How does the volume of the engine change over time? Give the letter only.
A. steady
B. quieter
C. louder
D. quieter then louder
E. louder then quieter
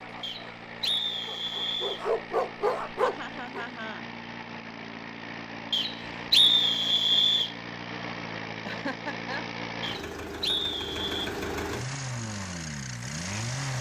C.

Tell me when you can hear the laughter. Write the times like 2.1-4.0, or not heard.
3.0-4.0, 8.7-9.4.